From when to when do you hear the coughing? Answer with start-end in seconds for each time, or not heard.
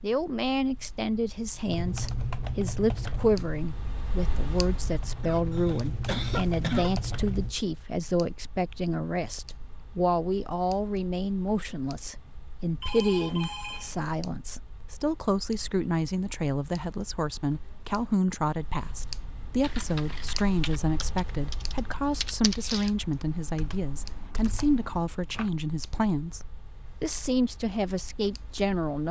5.2-7.0.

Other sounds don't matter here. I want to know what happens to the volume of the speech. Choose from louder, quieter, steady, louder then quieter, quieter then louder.
steady.